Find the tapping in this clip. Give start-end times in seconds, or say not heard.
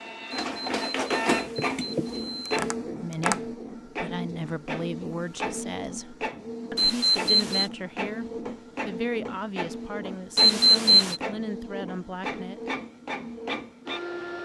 1.8-3.5.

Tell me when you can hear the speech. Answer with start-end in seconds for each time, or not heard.
2.9-12.6.